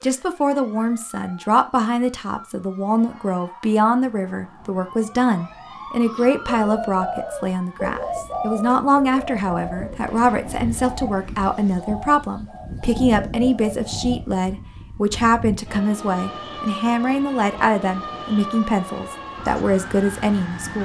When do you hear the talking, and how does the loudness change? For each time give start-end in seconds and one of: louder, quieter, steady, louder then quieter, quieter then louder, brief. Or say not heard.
0.0-20.8 steady.